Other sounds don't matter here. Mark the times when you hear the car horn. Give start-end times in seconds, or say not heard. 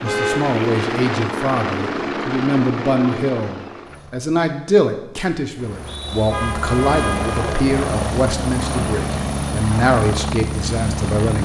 0.0-0.6, 6.3-7.7.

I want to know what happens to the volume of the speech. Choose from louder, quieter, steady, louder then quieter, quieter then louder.
steady.